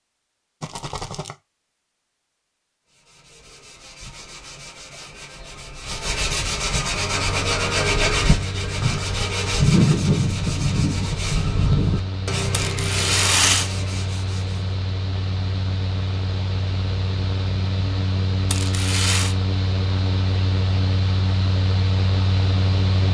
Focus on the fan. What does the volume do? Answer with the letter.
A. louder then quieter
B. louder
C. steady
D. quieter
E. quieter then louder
B.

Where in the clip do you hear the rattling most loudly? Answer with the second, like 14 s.
13 s.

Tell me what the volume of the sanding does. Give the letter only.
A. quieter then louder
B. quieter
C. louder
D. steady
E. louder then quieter
E.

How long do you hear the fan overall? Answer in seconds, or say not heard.
16 s.